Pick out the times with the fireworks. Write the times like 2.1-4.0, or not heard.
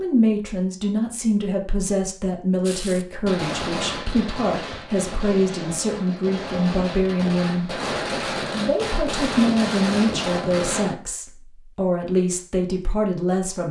2.6-10.9.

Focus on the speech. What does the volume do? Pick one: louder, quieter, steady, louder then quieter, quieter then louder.
steady.